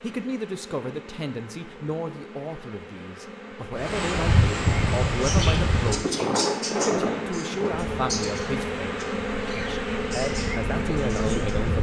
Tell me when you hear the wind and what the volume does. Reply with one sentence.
You can hear the wind from 3.8 to 11.7 s, getting quieter then louder.